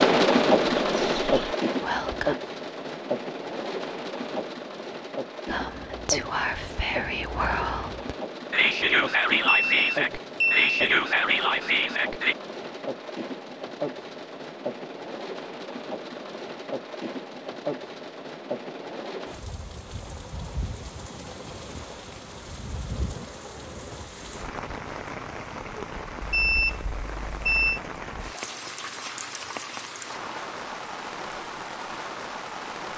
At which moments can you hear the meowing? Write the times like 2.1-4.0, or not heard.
not heard.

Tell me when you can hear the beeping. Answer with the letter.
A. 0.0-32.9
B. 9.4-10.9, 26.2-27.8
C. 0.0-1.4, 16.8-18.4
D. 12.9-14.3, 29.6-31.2
B.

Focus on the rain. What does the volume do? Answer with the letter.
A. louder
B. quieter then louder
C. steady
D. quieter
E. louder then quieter
D.